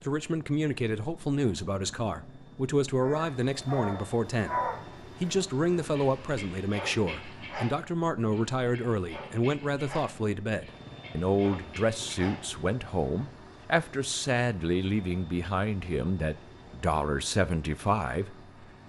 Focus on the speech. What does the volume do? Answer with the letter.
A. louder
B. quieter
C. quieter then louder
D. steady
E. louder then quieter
D.